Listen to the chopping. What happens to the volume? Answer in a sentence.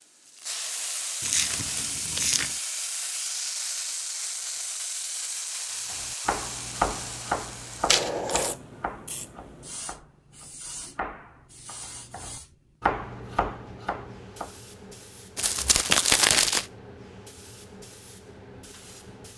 The volume of the chopping goes down, then up.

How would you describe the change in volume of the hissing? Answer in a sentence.
The volume of the hissing goes down.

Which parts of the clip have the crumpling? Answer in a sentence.
The crumpling can be heard from 1.2 to 2.5 s, from 7.8 to 8.6 s and from 15.3 to 16.6 s.